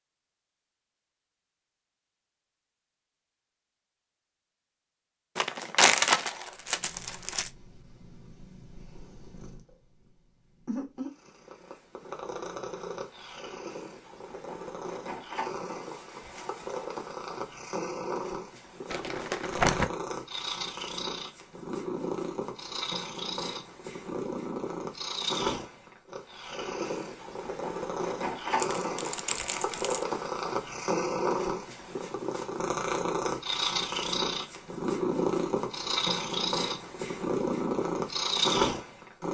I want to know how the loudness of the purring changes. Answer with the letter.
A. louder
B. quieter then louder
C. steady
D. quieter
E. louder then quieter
A.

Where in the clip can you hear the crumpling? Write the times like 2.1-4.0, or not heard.
5.3-7.5, 18.9-19.9, 28.6-30.1.